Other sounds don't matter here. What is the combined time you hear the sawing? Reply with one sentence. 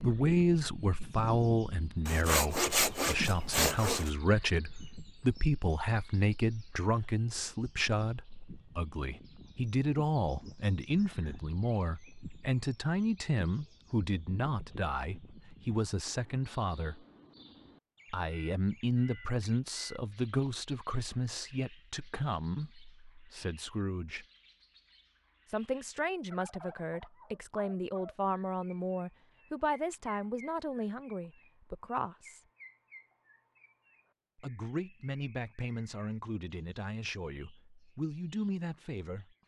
You can hear the sawing for 2 seconds altogether.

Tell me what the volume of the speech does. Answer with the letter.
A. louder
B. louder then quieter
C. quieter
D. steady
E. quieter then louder
C.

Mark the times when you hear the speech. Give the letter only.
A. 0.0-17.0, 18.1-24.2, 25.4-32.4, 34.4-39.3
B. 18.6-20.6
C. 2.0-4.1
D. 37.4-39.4
A.